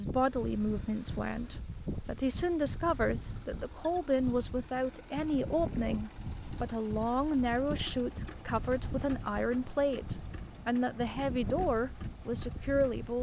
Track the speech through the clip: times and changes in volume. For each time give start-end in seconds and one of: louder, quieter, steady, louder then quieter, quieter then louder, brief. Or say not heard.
0.0-13.1 steady.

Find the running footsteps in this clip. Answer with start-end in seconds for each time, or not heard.
not heard.